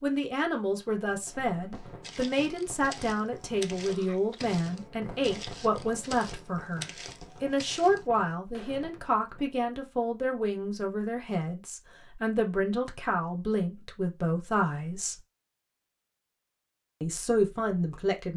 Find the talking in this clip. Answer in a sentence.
You can hear the talking from 0.0 to 15.2 s and from 17.0 to 18.3 s.